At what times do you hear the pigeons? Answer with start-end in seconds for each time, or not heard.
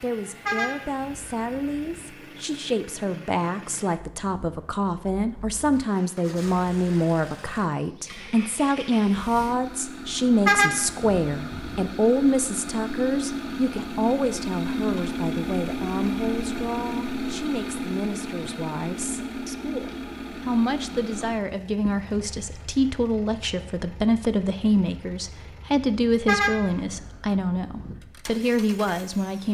not heard.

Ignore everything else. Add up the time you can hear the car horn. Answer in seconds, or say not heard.
5 s.